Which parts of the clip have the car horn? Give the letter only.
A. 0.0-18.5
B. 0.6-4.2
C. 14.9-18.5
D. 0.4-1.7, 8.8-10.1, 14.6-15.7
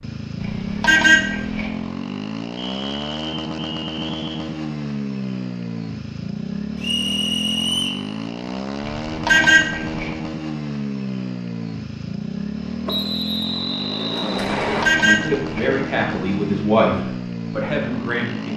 D.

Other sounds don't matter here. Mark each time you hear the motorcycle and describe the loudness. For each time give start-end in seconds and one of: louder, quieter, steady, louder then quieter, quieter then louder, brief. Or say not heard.
0.0-18.5 steady.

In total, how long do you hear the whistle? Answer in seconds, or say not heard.
5 s.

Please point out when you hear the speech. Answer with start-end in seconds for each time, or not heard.
14.9-18.5.